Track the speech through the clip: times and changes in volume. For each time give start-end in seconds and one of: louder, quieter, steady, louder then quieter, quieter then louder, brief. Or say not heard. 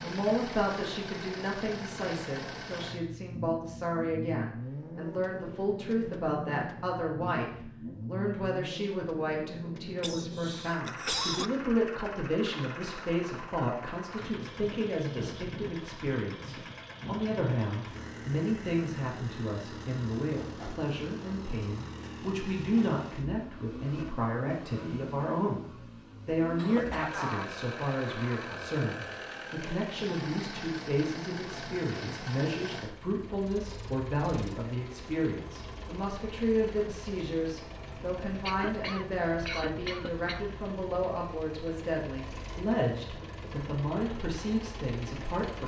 0.0-45.6 steady.